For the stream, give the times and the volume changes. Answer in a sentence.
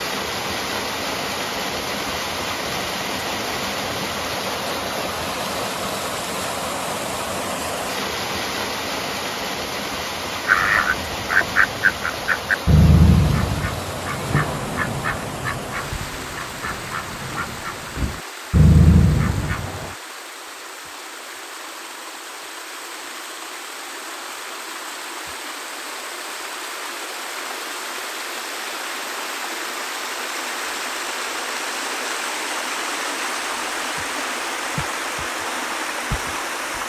The stream can be heard from 0.0 to 36.8 s, getting quieter then louder.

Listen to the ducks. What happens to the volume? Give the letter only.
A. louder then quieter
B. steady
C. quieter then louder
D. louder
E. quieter
C.